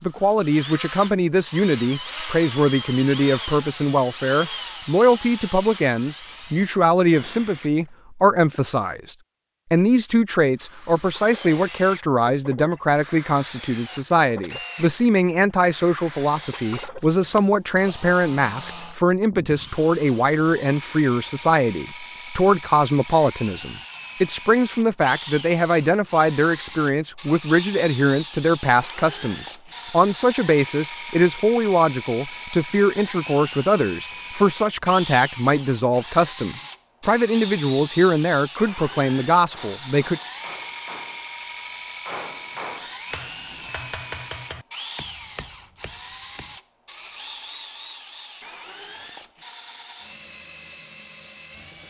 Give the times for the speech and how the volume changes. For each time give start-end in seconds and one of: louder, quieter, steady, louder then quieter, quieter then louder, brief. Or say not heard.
0.0-40.2 steady.